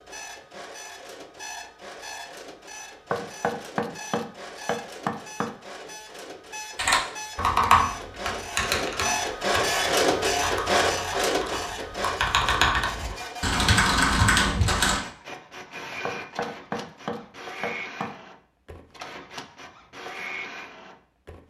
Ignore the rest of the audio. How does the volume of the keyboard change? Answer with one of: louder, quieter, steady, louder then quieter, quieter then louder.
quieter then louder.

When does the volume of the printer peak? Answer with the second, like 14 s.
10 s.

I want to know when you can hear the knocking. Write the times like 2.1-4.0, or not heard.
3.1-5.5, 16.1-18.1.